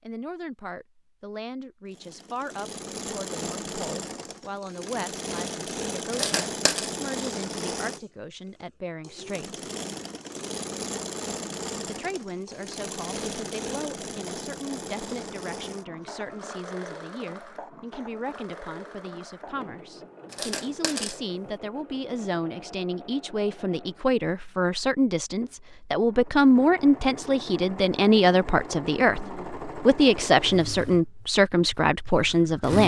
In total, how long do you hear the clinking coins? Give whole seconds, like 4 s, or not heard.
2 s.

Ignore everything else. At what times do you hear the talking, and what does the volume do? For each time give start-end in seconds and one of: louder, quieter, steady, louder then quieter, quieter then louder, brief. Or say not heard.
0.0-9.7 steady
11.8-32.8 louder.